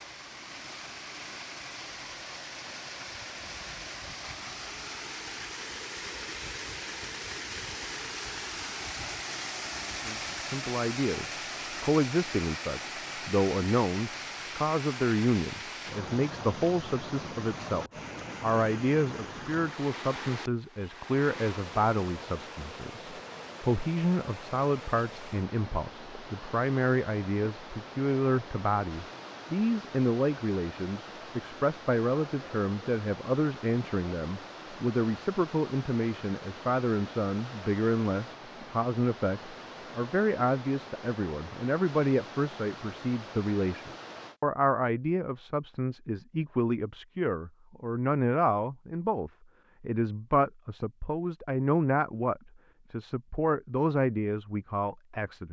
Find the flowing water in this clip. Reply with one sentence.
The flowing water can be heard from 0.0 to 44.4 s.